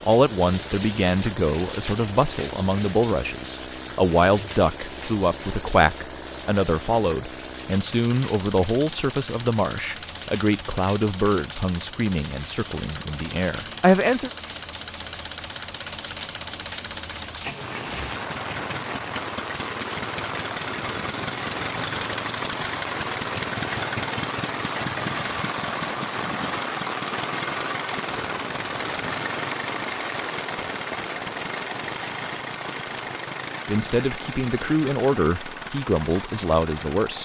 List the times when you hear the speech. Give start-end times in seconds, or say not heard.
0.0-14.3, 33.6-37.2.